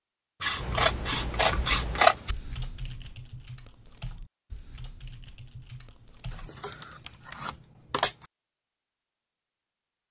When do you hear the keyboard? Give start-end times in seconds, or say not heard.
0.6-8.1.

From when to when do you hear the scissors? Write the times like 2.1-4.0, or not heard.
0.4-2.4, 6.3-8.2.